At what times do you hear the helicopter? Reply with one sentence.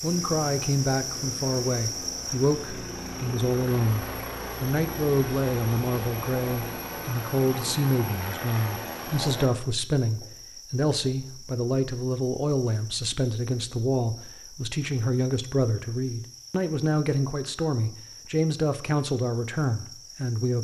You can hear the helicopter from 0.0 to 9.5 s.